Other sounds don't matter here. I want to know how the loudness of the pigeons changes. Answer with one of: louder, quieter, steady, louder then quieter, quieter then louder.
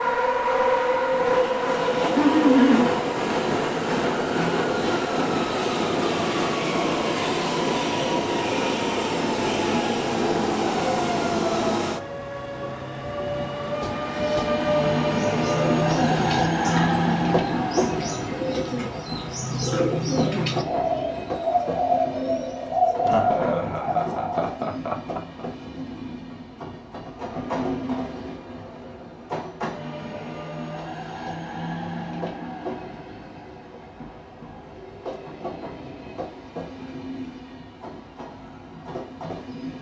louder.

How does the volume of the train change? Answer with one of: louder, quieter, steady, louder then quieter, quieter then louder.
quieter.